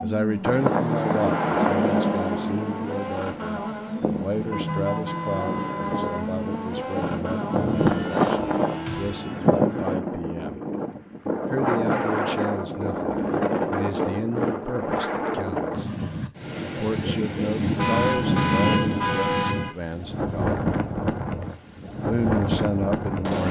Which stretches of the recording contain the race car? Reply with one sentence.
You can hear the race car from 0.0 to 9.2 s.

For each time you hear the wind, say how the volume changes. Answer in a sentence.
The wind can be heard from 0.0 to 23.4 s, at a steady volume.